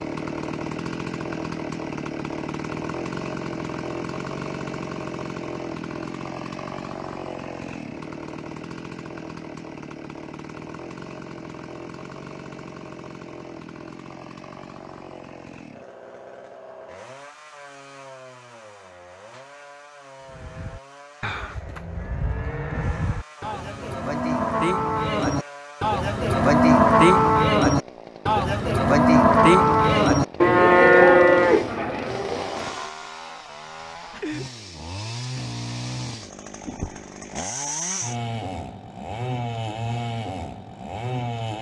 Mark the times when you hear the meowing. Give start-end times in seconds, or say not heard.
not heard.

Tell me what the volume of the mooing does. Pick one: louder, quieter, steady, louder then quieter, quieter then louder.
louder.